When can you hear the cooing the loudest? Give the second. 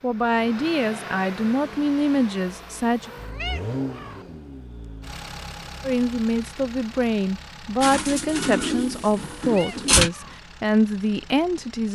10 s.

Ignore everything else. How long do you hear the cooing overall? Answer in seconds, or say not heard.
2 s.